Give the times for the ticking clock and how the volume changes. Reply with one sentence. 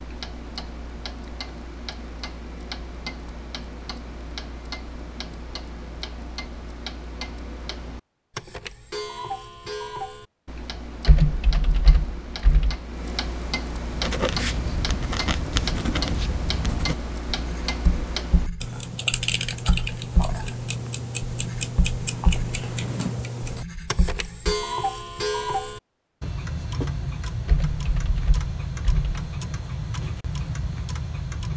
The ticking clock can be heard from 0.0 to 31.5 s, getting louder.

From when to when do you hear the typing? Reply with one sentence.
You can hear the typing from 11.1 to 12.8 s and from 27.4 to 29.2 s.